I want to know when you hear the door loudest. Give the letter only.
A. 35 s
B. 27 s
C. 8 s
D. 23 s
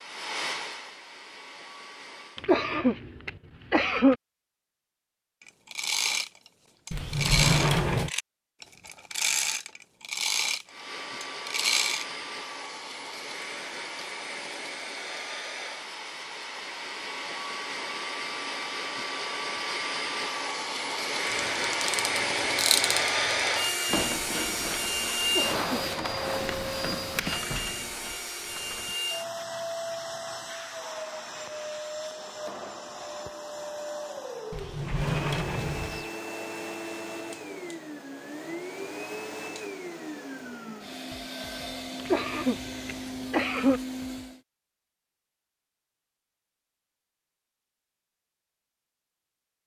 C.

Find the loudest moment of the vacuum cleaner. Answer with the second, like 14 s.
23 s.